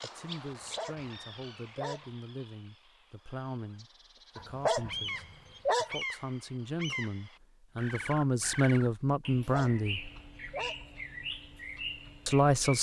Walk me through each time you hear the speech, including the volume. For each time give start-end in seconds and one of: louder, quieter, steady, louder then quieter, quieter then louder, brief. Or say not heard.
0.0-10.1 louder
12.2-12.7 brief.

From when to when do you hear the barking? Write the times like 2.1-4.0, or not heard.
0.5-2.1, 4.3-6.0, 9.2-10.8.